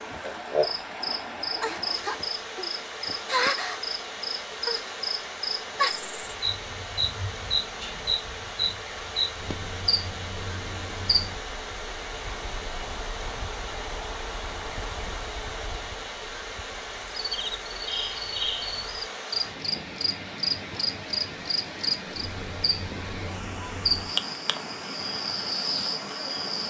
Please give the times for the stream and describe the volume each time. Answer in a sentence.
The stream can be heard from 0.0 to 26.6 s, at a steady volume.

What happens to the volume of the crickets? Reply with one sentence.
The volume of the crickets goes down, then up.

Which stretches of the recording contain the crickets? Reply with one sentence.
You can hear the crickets from 0.0 to 26.6 s.